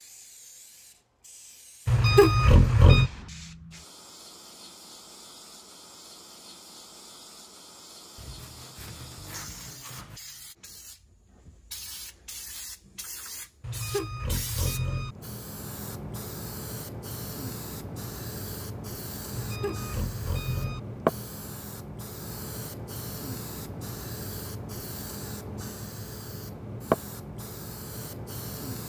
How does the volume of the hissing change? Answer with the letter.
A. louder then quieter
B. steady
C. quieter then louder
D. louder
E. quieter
D.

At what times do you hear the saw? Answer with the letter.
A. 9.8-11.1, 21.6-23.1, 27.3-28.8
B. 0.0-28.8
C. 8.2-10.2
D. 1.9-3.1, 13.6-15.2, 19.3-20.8
C.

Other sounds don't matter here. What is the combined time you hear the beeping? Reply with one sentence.
The beeping can be heard for 4 seconds in total.